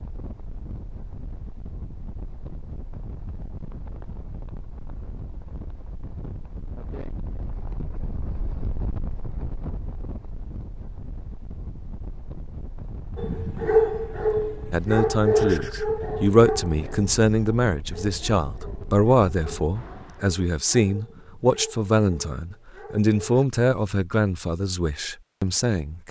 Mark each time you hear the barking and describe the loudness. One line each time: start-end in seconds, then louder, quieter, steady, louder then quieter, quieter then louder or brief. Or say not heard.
13.2-23.4 quieter.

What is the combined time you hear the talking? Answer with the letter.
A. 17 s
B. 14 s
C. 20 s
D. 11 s
D.